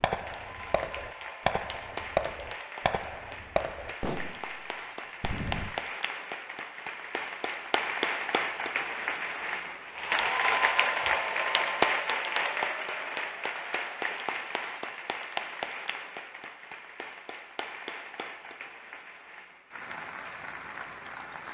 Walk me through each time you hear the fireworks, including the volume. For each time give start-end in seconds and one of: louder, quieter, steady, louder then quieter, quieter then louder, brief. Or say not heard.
0.0-5.7 louder then quieter.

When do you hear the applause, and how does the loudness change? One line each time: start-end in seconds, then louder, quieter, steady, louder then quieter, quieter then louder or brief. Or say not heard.
0.1-21.4 louder then quieter.